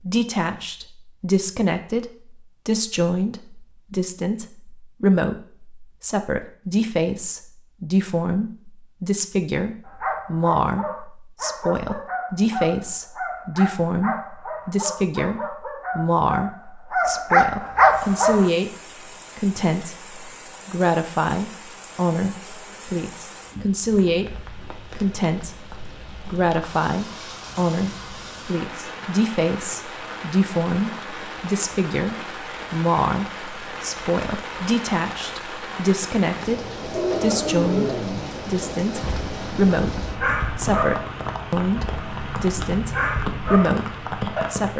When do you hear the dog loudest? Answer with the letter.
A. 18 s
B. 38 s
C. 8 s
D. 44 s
A.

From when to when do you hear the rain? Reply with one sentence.
You can hear the rain from 17.9 to 44.7 s.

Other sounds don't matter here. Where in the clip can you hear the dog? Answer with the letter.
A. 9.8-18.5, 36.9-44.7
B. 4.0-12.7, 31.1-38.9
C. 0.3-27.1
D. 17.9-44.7
A.